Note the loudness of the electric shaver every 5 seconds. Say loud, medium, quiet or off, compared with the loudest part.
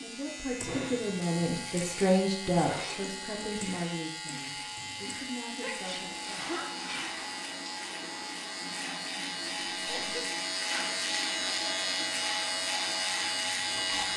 medium, medium, loud.